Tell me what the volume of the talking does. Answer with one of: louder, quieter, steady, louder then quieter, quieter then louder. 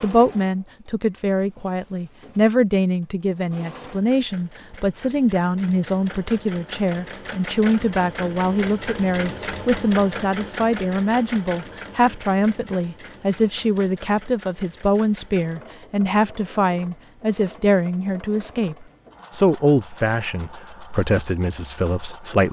steady.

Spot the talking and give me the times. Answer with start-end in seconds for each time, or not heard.
0.0-22.4.